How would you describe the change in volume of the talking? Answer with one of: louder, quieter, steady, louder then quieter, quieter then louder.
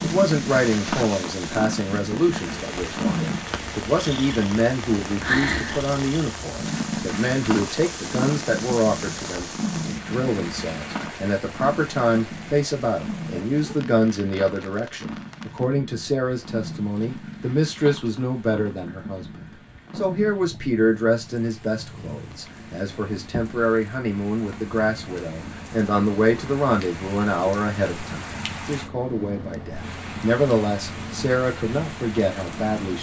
steady.